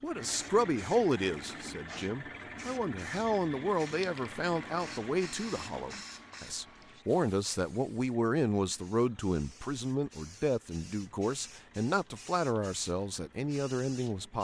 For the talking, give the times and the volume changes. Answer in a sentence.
The talking can be heard from 0.0 to 14.4 s, at a steady volume.